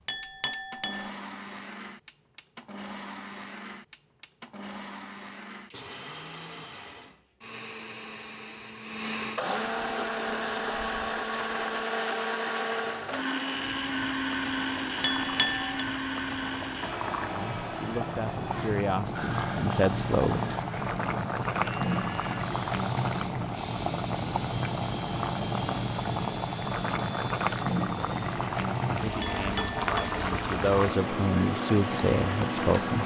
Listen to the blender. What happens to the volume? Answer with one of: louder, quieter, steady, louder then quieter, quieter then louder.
louder then quieter.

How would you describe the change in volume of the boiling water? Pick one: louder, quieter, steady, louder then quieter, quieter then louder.
louder.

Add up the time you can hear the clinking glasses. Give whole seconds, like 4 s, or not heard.
3 s.